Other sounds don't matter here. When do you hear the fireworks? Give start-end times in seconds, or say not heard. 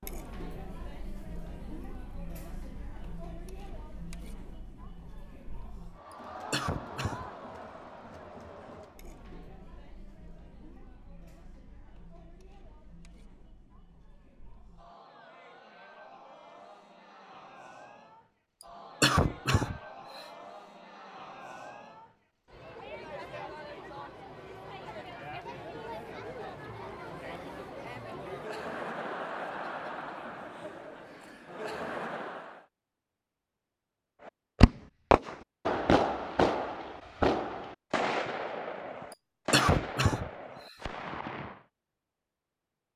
34.6-41.6.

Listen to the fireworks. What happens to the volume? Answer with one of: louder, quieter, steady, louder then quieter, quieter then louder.
quieter.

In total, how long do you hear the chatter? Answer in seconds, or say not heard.
33 s.